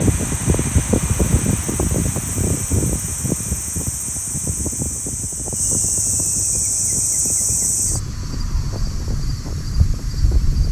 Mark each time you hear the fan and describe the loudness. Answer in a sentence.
The fan can be heard from 0.0 to 10.6 s, getting quieter.